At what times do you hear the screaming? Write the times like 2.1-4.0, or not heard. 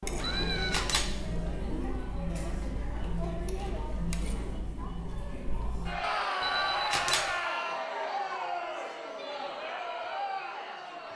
0.1-0.9, 6.0-7.8.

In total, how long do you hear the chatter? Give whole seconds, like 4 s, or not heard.
11 s.